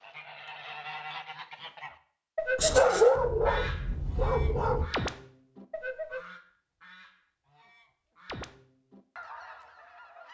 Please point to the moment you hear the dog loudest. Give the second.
3 s.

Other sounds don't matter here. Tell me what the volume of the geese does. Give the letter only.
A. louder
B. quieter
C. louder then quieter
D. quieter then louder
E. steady
C.